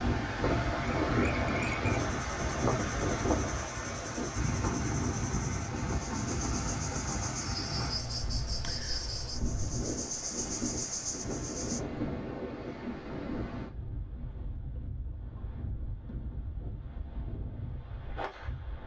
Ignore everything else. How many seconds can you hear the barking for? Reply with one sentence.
The barking can't be heard in this clip.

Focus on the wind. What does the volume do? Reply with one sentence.
The loudness of the wind goes down.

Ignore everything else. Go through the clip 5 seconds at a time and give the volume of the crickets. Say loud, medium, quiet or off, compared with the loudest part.
medium, loud, loud, off.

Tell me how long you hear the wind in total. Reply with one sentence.
You can hear the wind for 19 seconds altogether.